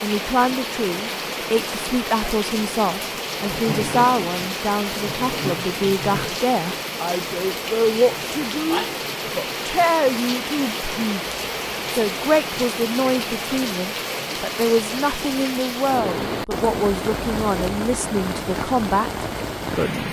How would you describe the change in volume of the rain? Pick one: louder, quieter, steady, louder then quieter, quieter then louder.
steady.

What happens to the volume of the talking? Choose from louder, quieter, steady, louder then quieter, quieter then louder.
steady.